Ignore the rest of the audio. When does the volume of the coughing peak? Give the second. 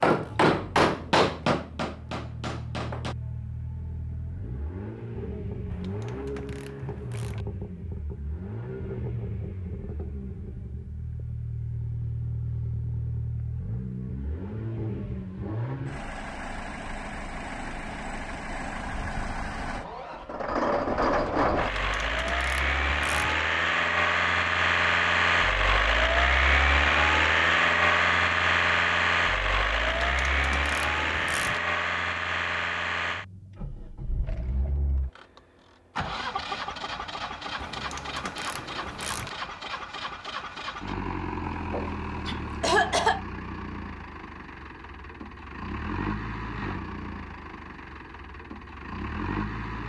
43 s.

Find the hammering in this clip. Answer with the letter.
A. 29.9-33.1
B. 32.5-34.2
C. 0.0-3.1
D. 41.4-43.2
C.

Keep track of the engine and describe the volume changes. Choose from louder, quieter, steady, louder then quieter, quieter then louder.
louder then quieter.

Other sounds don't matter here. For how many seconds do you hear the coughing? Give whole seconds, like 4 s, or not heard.
2 s.